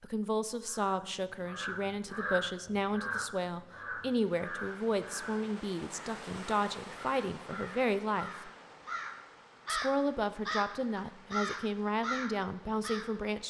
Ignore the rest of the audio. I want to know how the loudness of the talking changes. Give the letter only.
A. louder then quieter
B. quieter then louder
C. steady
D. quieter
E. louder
C.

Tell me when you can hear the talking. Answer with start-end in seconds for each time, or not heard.
0.0-8.5, 9.7-13.4.